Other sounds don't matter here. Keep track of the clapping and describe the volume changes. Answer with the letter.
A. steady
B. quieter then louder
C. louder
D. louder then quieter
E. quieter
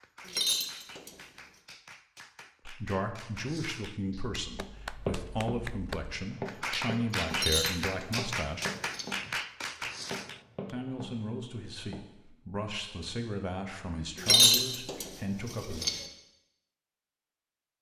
C.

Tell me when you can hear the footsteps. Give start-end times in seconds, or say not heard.
4.5-12.0.